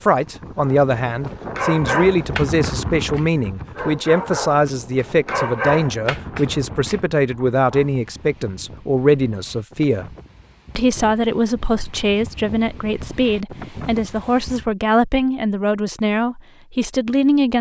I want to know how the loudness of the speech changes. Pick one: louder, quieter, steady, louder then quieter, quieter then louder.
steady.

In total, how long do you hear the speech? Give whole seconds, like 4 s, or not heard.
17 s.